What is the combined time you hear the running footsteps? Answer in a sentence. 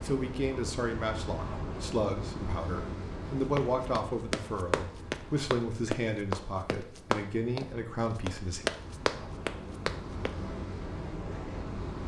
You can hear the running footsteps for 6 seconds altogether.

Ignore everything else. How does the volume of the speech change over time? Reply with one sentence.
The loudness of the speech stays about the same.